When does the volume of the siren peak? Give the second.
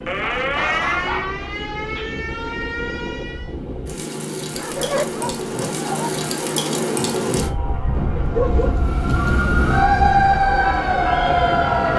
10 s.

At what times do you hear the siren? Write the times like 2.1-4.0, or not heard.
0.0-3.5, 8.8-11.9.